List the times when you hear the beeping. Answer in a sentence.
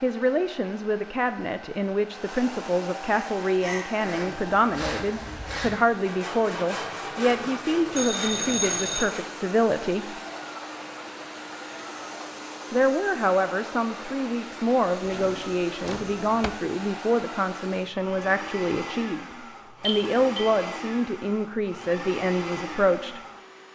The beeping can be heard from 8.0 to 9.1 s and from 19.8 to 20.4 s.